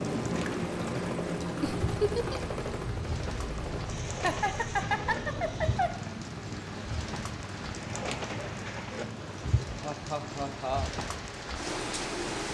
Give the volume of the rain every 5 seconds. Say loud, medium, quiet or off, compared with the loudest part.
medium, loud, loud.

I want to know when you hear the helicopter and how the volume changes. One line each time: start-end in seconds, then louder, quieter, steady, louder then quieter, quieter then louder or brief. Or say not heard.
0.0-12.2 quieter.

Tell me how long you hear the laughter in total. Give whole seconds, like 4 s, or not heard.
4 s.